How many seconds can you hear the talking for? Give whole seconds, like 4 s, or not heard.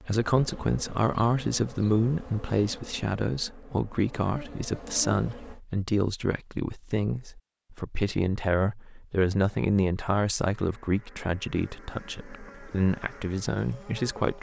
14 s.